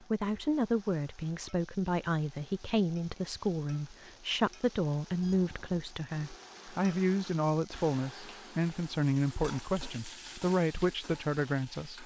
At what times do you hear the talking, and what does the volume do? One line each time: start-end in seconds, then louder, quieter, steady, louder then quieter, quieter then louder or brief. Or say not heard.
0.1-12.0 steady.